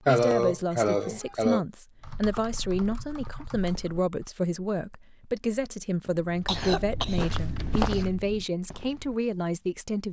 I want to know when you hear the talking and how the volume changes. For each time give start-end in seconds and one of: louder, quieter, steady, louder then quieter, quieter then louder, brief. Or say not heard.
0.1-10.0 steady.